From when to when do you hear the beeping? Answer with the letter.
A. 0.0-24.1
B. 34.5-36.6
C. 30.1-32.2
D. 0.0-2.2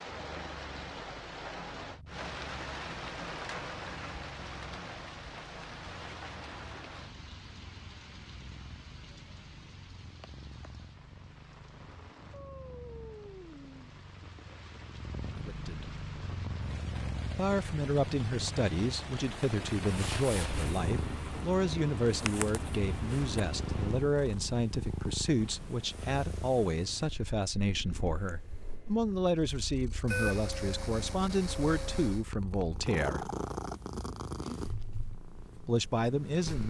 C.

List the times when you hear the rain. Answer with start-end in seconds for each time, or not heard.
0.0-24.1.